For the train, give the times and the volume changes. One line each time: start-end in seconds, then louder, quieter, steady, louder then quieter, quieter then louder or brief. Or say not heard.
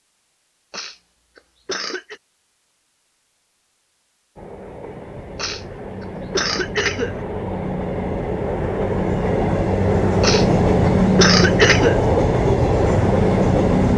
4.3-13.9 louder.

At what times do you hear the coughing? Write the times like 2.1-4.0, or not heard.
0.7-2.2, 5.3-7.2, 10.2-12.0.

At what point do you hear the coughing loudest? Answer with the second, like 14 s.
12 s.